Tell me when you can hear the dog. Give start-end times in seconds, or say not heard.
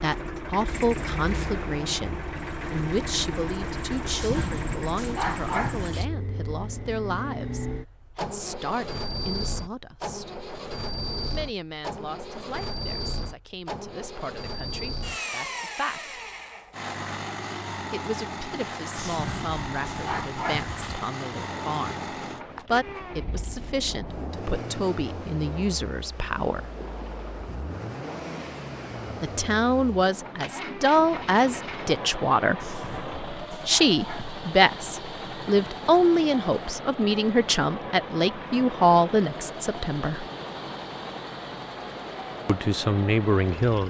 4.0-6.0, 18.9-20.9, 32.6-34.4.